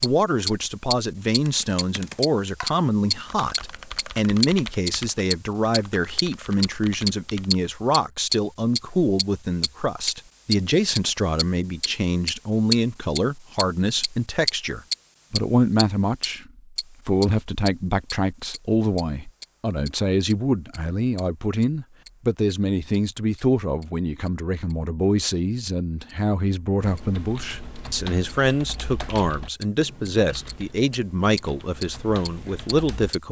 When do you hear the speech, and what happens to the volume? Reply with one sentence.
You can hear the speech from 0.0 to 33.2 s, at a steady volume.